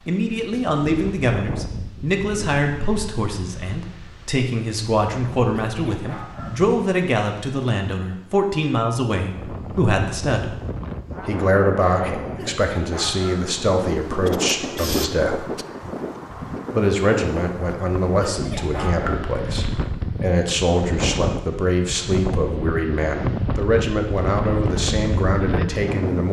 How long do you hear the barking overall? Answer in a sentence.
You can hear the barking for 3 seconds altogether.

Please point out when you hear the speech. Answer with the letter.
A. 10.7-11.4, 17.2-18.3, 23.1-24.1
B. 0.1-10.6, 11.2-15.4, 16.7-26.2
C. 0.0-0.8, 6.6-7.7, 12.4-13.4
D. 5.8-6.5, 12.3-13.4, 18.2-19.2
B.